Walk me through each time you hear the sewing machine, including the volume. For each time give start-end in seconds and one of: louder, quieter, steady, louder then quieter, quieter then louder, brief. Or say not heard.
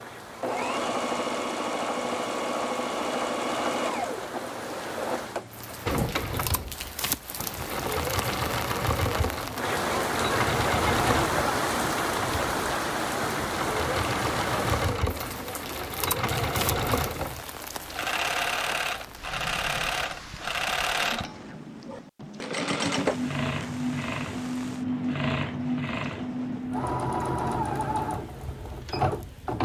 0.4-29.6 steady.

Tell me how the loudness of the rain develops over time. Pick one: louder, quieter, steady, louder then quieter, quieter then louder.
louder then quieter.